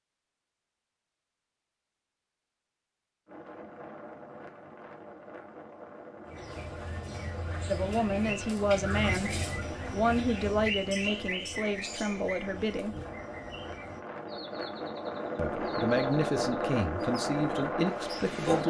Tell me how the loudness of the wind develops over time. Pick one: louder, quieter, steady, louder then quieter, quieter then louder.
louder.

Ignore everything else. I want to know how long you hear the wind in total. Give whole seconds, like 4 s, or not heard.
15 s.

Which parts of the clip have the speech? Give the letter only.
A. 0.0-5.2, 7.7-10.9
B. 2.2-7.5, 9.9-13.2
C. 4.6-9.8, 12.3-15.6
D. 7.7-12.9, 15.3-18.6
D.